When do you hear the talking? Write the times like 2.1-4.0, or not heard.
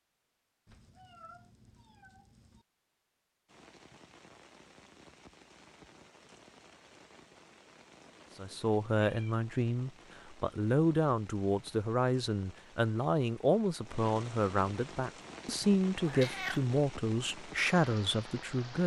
8.3-18.8.